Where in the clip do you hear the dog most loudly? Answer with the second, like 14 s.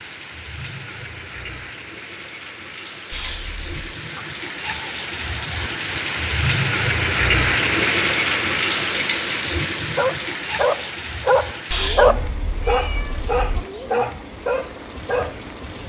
12 s.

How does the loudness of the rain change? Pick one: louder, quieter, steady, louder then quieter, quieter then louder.
louder then quieter.